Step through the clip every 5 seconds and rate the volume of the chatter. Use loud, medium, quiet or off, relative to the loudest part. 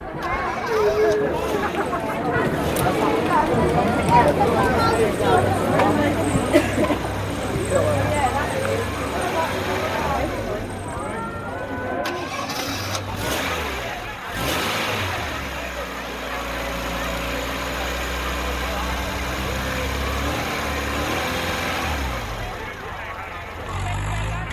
loud, loud, medium, quiet, quiet.